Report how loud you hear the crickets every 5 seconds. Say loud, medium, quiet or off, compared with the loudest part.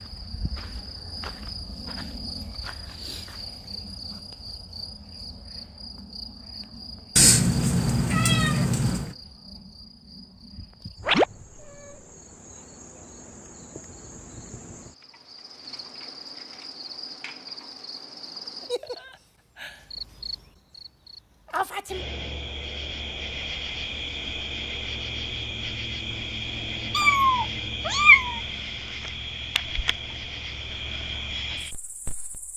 medium, medium, quiet, medium, loud, loud, loud.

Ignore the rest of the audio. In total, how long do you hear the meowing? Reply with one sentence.
The meowing can be heard for 4 seconds in total.